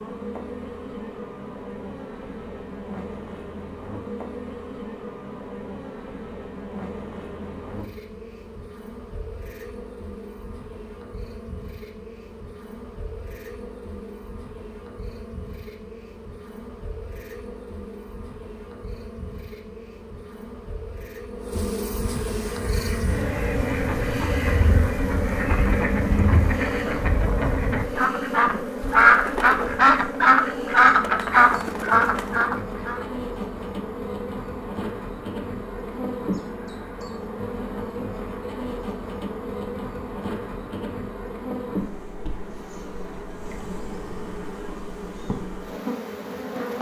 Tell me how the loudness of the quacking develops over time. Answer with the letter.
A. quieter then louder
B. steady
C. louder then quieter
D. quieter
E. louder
E.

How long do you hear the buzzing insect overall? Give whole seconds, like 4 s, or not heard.
47 s.